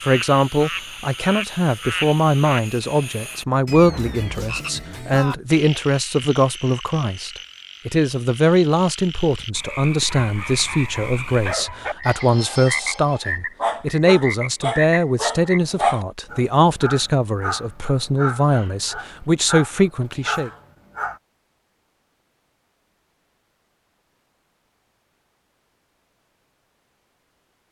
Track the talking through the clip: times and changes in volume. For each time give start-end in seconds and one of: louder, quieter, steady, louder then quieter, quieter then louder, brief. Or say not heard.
0.1-20.5 steady.